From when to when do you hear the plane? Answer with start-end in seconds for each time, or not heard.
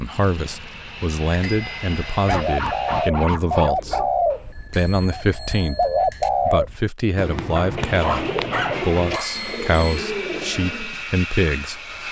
0.0-3.1, 8.7-12.0.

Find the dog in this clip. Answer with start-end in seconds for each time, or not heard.
2.2-4.1, 7.5-9.3.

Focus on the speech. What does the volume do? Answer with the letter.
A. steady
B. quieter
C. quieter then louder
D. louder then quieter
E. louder
A.